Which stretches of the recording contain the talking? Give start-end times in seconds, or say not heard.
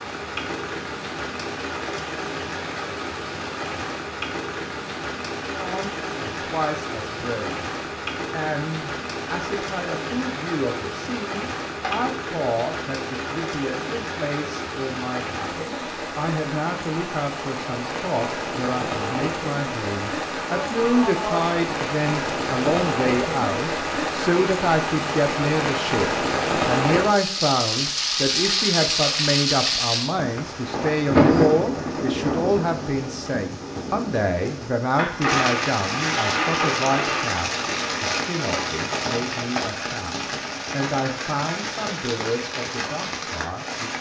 5.5-7.7, 8.3-43.9.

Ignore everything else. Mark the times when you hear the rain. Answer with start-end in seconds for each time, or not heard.
0.0-43.9.